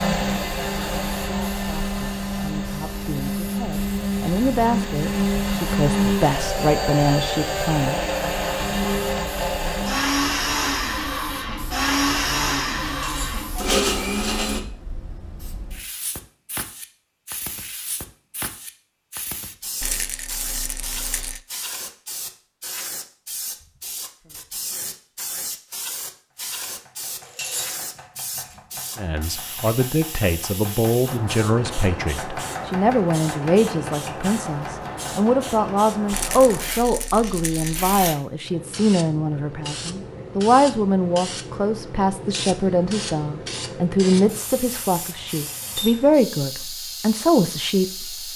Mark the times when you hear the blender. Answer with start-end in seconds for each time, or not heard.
0.0-14.6.